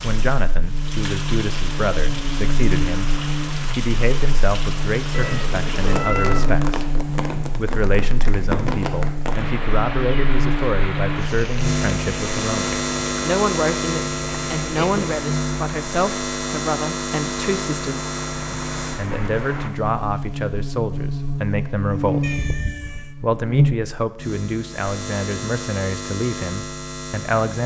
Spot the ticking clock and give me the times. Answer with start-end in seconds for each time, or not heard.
not heard.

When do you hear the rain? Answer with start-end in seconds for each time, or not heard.
0.0-19.7.